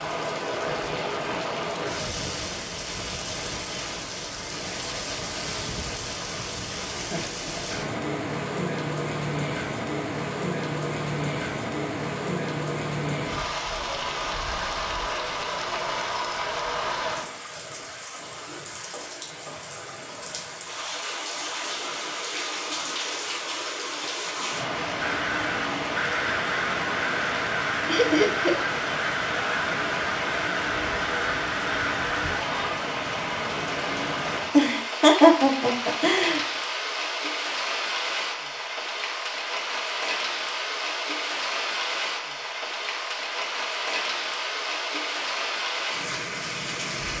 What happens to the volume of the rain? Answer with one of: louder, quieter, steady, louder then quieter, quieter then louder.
steady.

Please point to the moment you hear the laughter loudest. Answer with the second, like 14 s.
35 s.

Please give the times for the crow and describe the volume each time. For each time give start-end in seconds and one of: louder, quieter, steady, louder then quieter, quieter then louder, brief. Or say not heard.
24.9-32.5 steady.